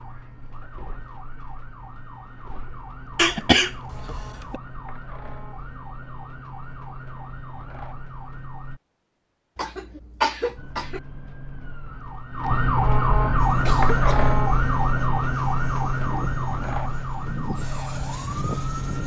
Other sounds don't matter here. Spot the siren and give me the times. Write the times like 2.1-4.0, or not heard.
0.0-8.8, 10.6-19.0.